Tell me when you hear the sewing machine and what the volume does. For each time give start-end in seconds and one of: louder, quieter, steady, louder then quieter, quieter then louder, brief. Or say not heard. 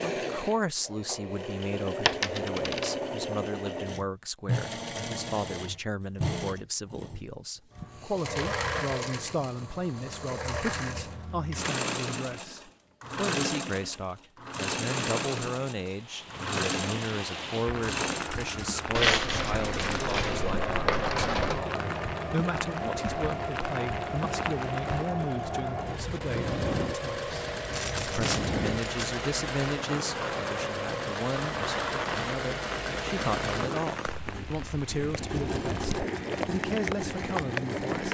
0.0-38.0 steady.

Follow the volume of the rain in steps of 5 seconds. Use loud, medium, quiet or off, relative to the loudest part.
off, off, off, loud, loud, loud, loud, loud.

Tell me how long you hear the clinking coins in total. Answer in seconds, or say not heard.
5 s.